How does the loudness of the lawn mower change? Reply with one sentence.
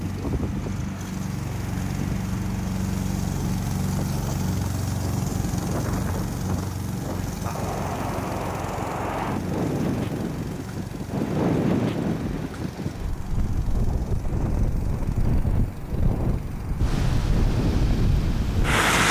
The loudness of the lawn mower goes down.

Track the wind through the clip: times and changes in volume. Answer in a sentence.
The wind can be heard from 0.0 to 19.0 s, getting louder.